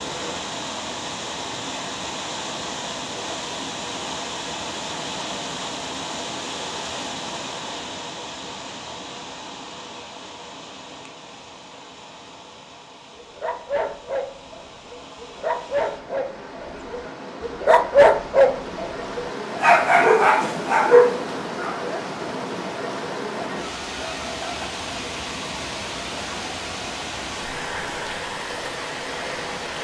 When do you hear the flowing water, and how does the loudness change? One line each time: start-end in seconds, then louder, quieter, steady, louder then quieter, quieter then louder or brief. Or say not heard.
0.0-29.7 quieter then louder.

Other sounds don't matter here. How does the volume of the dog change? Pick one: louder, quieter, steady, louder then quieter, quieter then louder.
louder.